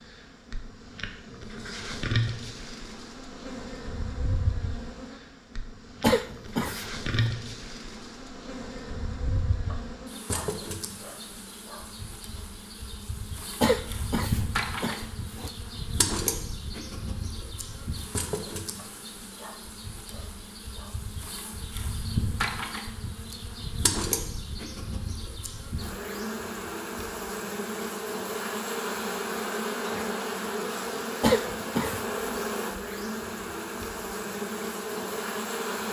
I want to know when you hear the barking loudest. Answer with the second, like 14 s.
10 s.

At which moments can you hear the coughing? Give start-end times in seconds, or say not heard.
6.0-7.3, 13.6-15.5, 31.2-32.0.